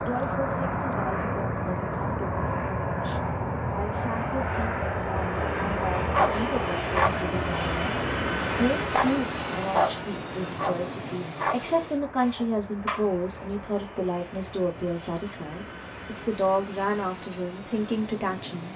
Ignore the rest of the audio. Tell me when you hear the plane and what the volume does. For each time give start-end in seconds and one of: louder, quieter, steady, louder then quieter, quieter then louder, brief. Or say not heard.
0.0-18.7 quieter.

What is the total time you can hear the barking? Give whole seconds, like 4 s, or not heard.
7 s.